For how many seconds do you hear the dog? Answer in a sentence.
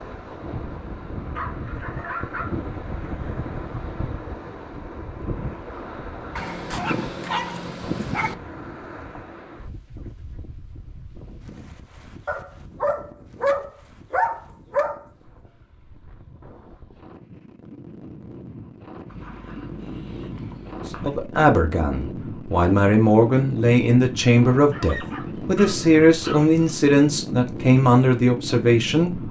The dog can be heard for 10 seconds in total.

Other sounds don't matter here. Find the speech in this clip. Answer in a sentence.
You can hear the speech from 21.0 to 29.2 s.